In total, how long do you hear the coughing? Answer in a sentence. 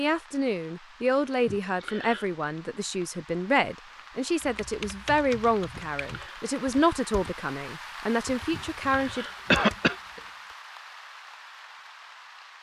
The coughing can be heard for 3 seconds in total.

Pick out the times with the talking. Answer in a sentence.
The talking can be heard from 0.0 to 9.2 s.